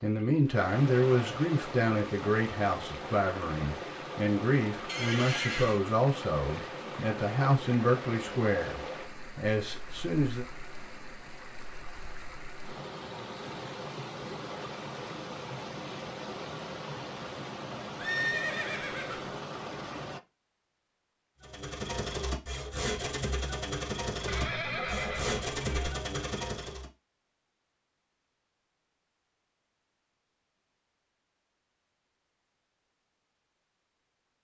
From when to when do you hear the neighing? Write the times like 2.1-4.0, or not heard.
4.8-5.8, 17.9-19.4, 24.2-25.9.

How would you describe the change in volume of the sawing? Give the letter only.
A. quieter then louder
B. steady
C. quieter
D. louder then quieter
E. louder
B.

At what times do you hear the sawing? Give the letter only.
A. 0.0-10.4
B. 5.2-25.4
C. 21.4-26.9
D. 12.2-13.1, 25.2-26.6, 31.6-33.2
C.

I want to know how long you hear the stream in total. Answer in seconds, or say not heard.
20 s.